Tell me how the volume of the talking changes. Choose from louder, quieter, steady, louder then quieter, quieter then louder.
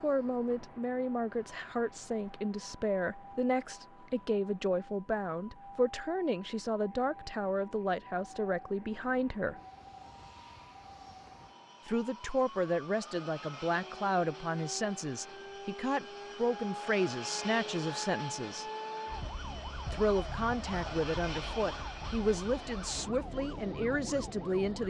steady.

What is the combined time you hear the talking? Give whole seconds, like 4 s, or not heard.
21 s.